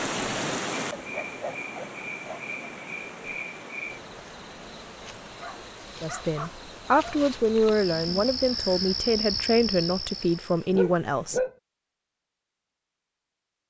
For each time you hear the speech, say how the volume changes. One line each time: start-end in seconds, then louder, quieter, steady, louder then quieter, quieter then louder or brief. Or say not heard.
6.0-11.4 steady.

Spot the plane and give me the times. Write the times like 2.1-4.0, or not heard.
not heard.